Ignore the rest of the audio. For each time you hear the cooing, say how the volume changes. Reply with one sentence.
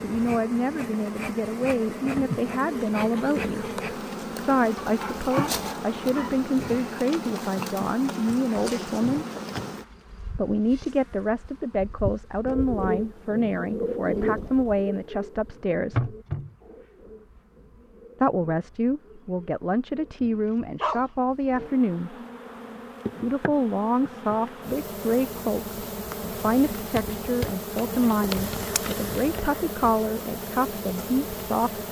You can hear the cooing from 12.4 to 20.2 s, getting quieter.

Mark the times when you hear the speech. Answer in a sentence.
The speech can be heard from 0.0 to 9.2 s, from 10.3 to 16.1 s, from 18.2 to 22.1 s and from 23.2 to 31.8 s.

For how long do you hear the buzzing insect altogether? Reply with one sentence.
The buzzing insect can be heard for 32 seconds in total.